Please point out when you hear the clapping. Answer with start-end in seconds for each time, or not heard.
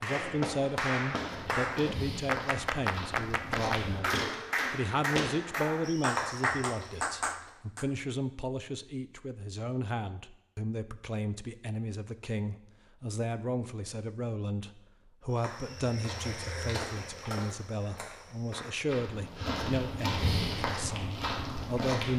0.0-7.8.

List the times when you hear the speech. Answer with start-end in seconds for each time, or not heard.
0.0-22.1.